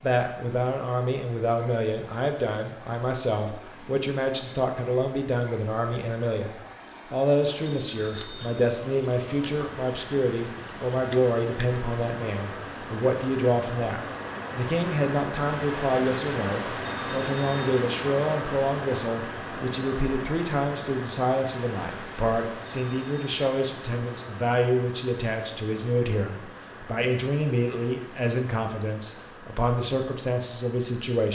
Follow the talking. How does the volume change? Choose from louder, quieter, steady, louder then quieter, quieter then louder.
steady.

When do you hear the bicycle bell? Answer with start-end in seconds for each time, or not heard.
7.7-8.4, 16.9-17.6, 22.7-23.3.